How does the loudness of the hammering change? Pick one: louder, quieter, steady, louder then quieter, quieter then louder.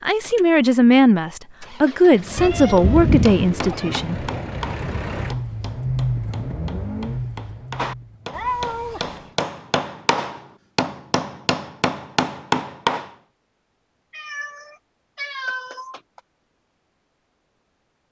quieter then louder.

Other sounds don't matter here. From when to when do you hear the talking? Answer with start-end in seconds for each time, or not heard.
0.0-4.2.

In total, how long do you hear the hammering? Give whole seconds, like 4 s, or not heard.
10 s.